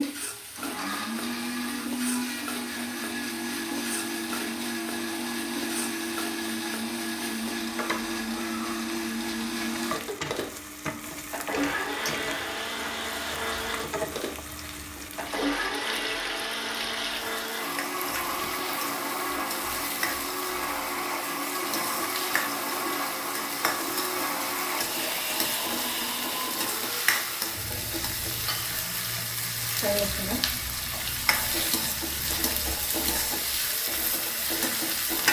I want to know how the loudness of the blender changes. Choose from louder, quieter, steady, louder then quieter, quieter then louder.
steady.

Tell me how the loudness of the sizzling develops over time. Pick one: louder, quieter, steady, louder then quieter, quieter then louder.
louder.